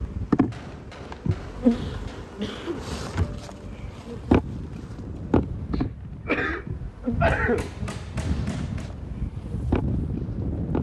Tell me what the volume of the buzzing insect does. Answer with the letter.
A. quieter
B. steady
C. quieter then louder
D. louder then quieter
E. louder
A.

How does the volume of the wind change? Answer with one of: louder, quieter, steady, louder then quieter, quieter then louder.
louder.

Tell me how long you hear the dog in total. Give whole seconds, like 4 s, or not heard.
not heard.